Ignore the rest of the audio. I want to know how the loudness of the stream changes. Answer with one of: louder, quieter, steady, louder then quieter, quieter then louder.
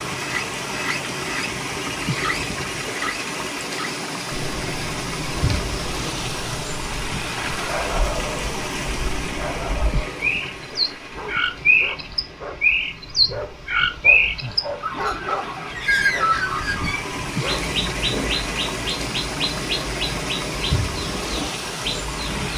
quieter then louder.